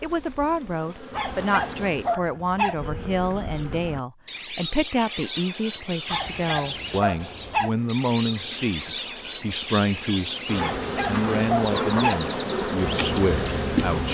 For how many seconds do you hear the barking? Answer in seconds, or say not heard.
5 s.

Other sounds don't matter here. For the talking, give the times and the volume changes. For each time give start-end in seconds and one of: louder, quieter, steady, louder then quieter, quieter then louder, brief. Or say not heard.
0.0-14.0 steady.